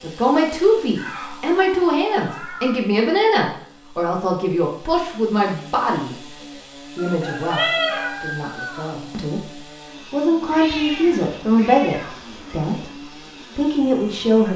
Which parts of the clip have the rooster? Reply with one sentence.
The rooster can be heard from 7.0 to 8.9 s.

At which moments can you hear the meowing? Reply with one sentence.
The meowing can be heard from 0.9 to 2.8 s, from 7.5 to 8.2 s and from 10.5 to 12.7 s.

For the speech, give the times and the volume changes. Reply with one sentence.
You can hear the speech from 0.0 to 6.2 s, at a steady volume; briefly from 7.0 to 9.5 s; and from 10.1 to 14.5 s, getting quieter then louder.